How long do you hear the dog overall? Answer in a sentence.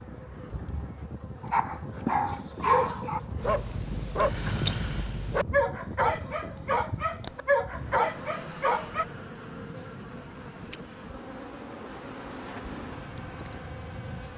You can hear the dog for 8 seconds altogether.